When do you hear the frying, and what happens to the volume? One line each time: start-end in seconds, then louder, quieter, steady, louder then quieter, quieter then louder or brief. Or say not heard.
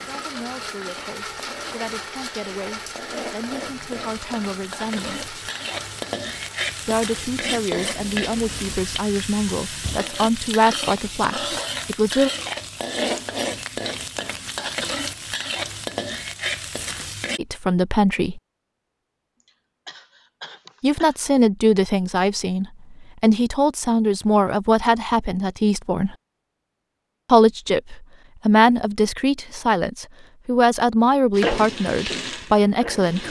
0.0-17.4 louder
31.4-33.2 brief.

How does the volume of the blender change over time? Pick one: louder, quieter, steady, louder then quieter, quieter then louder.
quieter.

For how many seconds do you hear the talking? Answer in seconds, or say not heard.
23 s.